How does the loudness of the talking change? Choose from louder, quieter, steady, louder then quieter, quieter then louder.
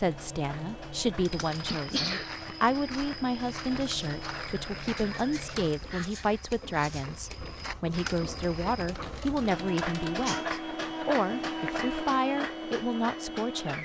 steady.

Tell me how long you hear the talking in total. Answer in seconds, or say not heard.
14 s.